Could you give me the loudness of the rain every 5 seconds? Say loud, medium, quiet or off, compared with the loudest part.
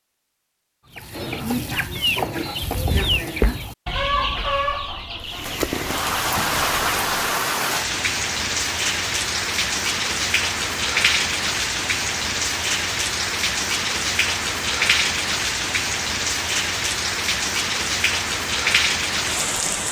off, loud, loud, loud.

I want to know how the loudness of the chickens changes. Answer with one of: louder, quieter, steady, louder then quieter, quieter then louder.
quieter.